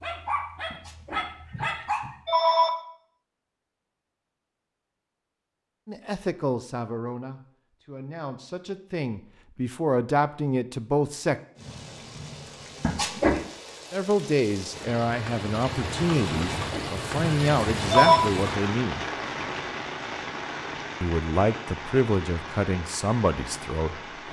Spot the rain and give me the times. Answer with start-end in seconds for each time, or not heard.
11.6-24.2.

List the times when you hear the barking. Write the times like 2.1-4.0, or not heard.
0.0-2.0.